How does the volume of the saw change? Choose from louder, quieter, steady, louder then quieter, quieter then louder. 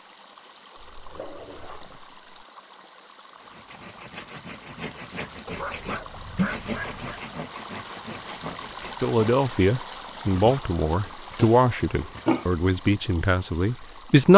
louder then quieter.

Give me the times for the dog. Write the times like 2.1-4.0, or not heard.
0.8-2.2, 5.5-7.2, 9.9-12.4.